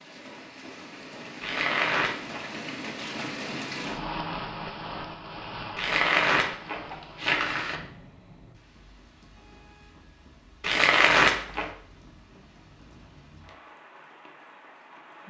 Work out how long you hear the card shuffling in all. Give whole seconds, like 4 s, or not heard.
4 s.